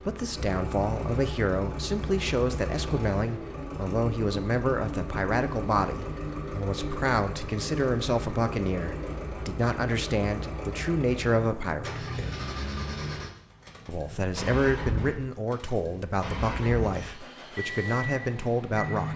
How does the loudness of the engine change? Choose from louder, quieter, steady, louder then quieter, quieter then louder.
steady.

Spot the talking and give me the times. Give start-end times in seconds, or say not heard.
0.1-12.1, 13.8-19.1.